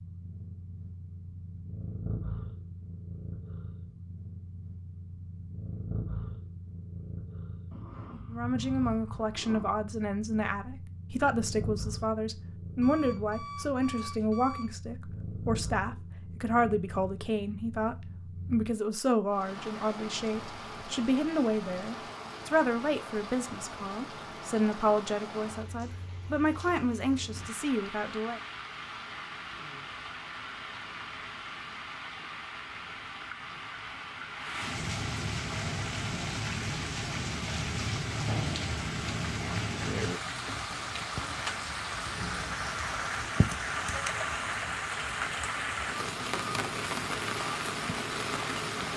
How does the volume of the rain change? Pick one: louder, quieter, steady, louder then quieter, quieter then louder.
louder.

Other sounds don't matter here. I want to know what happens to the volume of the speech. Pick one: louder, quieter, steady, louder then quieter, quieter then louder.
steady.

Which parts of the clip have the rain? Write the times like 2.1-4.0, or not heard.
19.3-48.9.